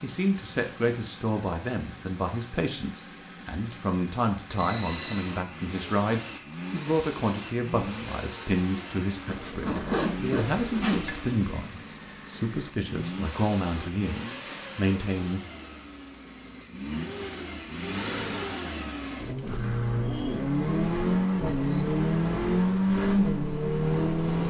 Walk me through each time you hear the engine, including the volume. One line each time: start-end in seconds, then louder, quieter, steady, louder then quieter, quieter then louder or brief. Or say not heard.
0.0-24.4 louder.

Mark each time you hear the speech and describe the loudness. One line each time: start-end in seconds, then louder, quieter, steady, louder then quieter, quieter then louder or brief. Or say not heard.
0.0-15.4 steady.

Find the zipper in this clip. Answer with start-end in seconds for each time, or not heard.
9.2-11.2.